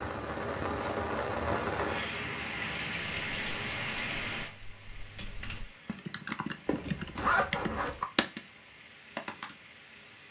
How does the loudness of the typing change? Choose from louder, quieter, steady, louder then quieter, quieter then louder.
louder.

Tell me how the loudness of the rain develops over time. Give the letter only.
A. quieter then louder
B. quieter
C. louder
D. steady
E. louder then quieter
B.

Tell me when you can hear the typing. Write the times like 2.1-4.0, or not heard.
3.0-9.6.